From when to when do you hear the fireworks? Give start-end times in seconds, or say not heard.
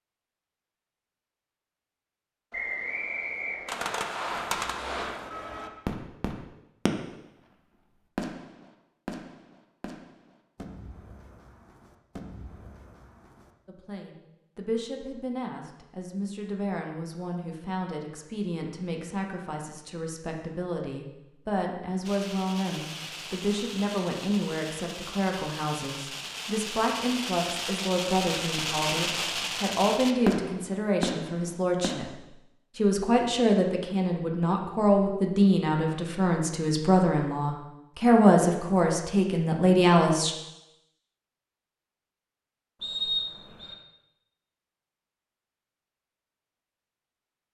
3.6-7.2, 8.2-13.5, 22.1-32.1.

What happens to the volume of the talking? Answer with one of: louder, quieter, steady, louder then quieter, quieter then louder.
louder.